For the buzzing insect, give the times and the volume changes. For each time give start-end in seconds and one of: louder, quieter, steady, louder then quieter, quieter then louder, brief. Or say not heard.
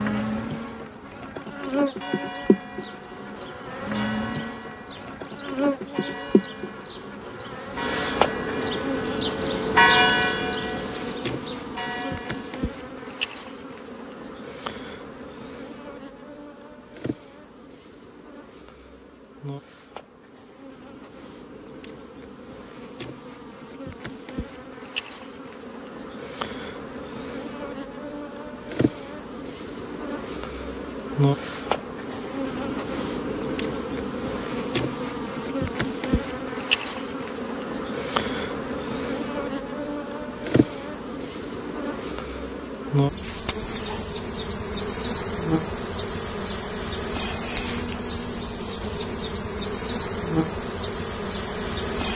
0.0-52.1 quieter then louder.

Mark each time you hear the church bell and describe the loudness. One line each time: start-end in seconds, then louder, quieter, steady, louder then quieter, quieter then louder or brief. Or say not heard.
1.5-12.6 louder then quieter.